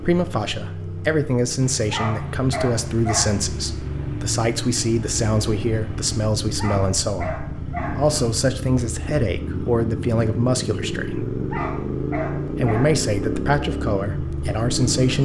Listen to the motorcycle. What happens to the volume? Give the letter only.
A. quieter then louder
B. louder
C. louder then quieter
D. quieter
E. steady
B.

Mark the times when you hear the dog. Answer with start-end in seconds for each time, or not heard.
1.9-3.5, 6.5-8.1, 11.5-12.9.